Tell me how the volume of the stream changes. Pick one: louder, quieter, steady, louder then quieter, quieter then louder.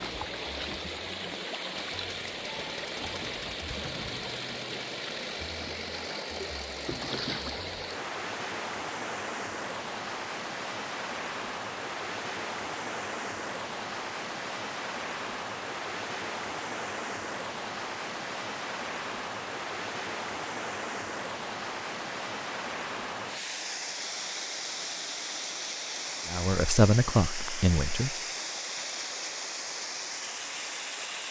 steady.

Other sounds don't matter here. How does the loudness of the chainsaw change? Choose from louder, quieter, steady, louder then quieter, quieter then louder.
steady.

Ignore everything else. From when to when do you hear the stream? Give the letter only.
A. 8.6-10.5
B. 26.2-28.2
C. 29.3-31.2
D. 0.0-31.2
D.